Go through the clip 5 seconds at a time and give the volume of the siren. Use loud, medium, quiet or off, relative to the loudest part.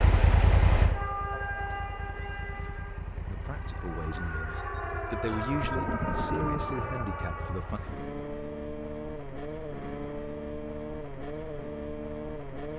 loud, loud, off.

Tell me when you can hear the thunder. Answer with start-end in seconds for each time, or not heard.
5.5-6.9.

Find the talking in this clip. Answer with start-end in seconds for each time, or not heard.
3.2-7.8.